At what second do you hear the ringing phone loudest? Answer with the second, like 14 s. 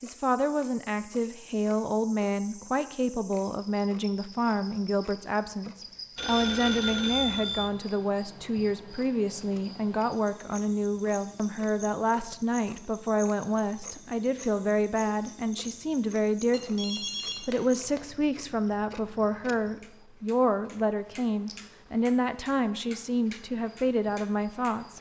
7 s.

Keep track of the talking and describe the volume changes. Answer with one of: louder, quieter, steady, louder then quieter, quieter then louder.
steady.